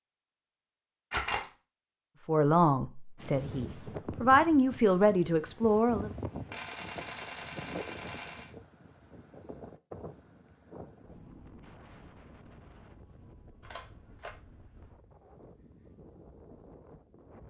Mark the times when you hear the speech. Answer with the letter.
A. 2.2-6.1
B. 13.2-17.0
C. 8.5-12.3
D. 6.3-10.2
A.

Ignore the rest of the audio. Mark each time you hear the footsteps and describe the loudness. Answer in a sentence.
The footsteps can't be heard in this clip.